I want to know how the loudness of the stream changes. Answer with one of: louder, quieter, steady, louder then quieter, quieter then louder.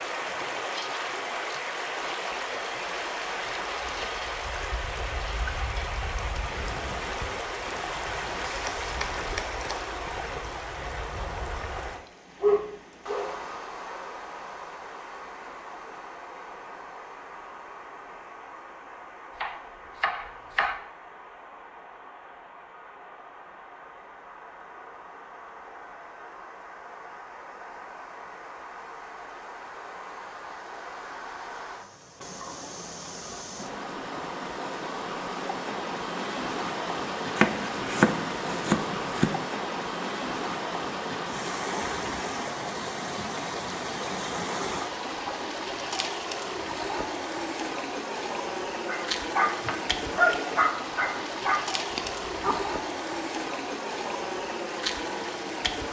quieter then louder.